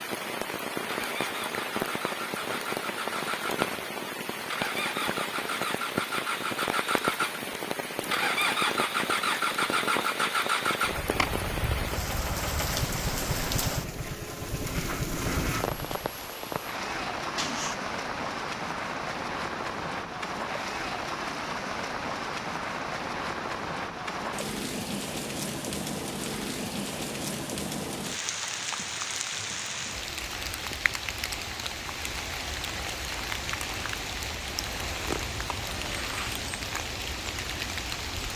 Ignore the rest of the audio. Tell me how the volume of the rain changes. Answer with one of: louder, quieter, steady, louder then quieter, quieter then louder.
steady.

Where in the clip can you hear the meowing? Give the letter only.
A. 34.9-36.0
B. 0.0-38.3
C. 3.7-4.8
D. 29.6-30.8
A.